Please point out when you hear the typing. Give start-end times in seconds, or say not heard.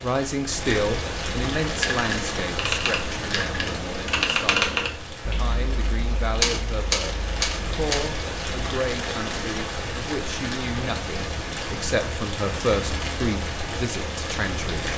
1.6-8.1.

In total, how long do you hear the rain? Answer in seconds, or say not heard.
15 s.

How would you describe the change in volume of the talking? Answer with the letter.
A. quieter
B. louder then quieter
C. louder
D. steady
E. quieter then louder
E.